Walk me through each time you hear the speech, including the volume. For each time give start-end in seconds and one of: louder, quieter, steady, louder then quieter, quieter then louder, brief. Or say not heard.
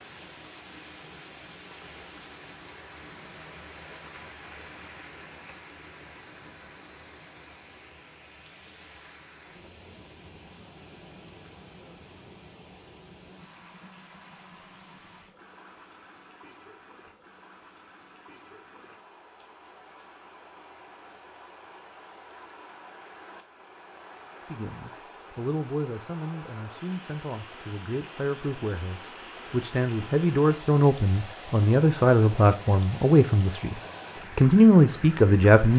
24.5-33.8 louder
34.4-35.7 brief.